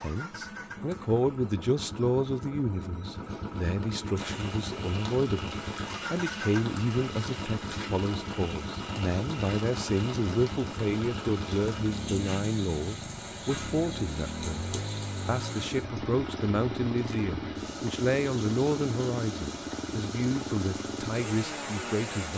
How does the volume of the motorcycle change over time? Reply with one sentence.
The volume of the motorcycle stays about the same.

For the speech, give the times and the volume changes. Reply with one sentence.
You can hear the speech from 0.0 to 22.3 s, at a steady volume.